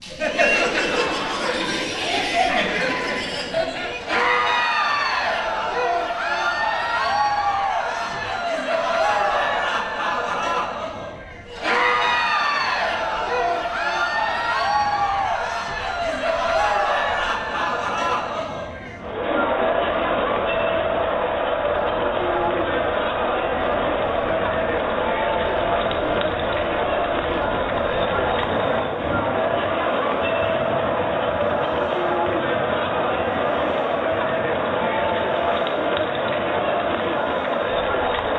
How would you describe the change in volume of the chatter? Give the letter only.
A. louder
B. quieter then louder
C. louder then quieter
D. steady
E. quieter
D.